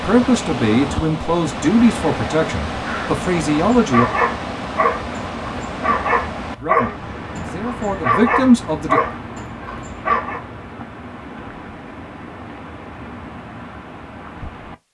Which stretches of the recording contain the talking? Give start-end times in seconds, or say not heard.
0.0-4.0, 6.5-9.0.